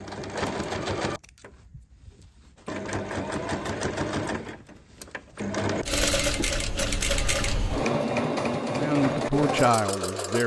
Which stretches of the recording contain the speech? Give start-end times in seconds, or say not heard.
8.8-10.4.